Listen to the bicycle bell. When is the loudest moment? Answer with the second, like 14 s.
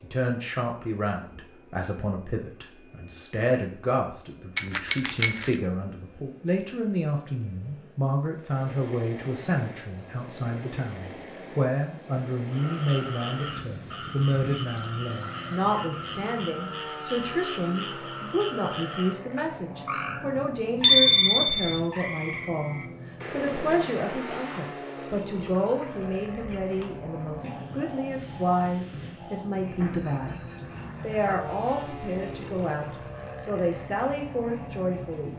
21 s.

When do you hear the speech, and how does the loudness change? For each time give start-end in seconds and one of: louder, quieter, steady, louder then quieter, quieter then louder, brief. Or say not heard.
0.0-35.3 steady.